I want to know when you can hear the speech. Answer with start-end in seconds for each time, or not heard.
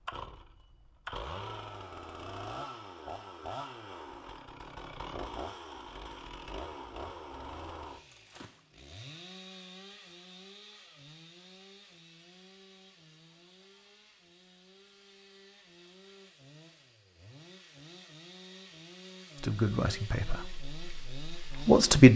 19.4-22.1.